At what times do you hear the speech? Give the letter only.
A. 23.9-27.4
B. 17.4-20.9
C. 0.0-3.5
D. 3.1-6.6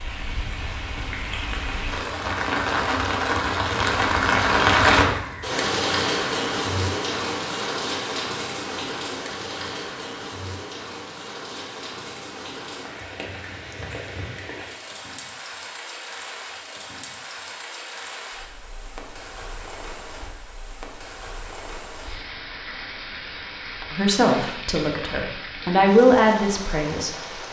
A.